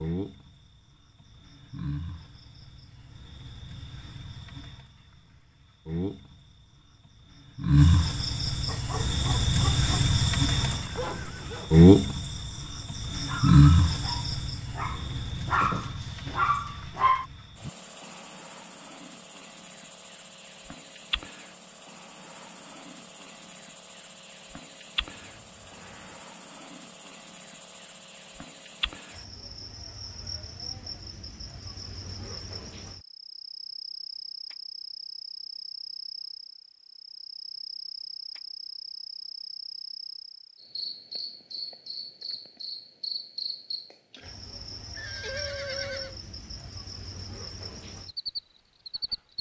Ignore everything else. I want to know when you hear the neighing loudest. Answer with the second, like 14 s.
46 s.